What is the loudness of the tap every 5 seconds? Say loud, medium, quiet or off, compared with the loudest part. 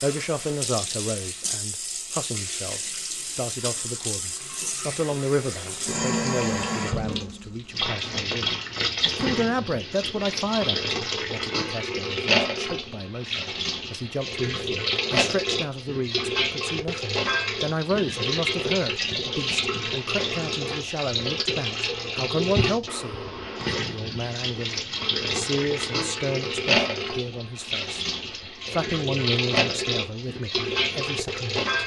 medium, loud, loud, loud, loud, loud, loud.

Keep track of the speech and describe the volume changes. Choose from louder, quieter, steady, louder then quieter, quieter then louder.
steady.